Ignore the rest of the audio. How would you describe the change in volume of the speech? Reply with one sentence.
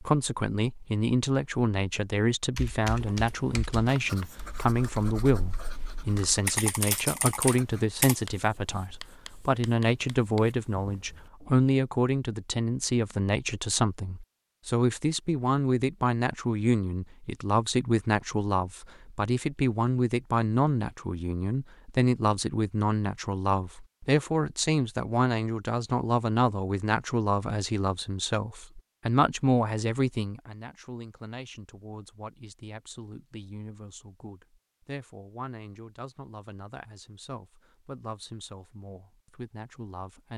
The volume of the speech goes down.